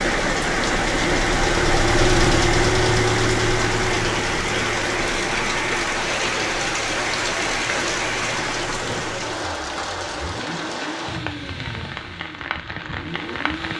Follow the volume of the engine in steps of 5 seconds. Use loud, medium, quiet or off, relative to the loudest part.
loud, quiet, medium.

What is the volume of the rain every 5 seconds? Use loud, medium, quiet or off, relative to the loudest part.
loud, loud, medium.